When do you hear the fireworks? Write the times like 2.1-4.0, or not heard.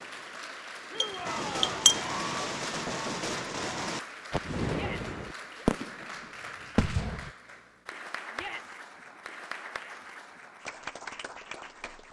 1.2-7.3.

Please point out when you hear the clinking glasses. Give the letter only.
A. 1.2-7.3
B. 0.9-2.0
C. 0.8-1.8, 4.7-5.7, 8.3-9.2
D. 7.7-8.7
B.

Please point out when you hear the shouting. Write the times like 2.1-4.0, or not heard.
0.8-1.8, 4.7-5.7, 8.3-9.2.